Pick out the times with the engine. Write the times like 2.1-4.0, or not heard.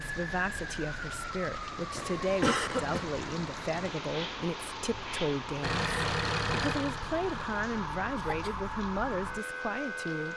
5.6-7.7.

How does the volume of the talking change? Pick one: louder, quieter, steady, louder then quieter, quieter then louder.
steady.